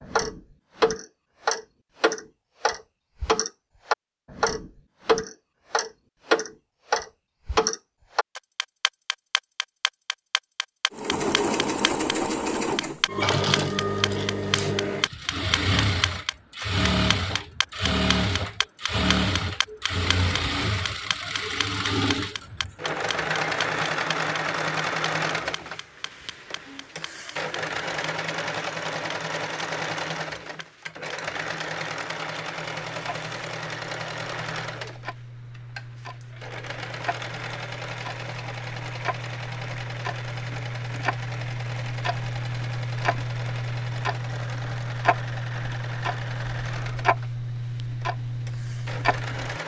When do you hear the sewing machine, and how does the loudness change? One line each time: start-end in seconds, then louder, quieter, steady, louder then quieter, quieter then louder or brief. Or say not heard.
10.9-49.6 quieter.